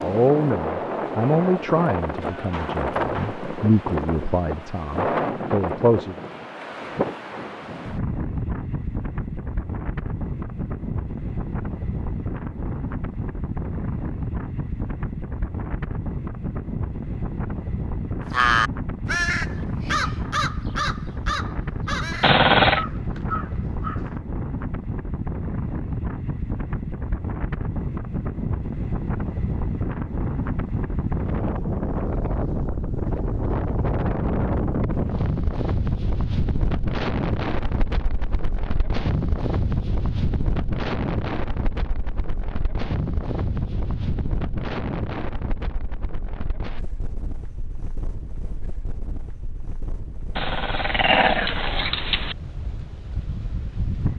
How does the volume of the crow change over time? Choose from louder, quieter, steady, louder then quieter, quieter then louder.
quieter.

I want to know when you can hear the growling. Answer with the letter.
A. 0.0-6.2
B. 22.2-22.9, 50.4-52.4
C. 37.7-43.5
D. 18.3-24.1
B.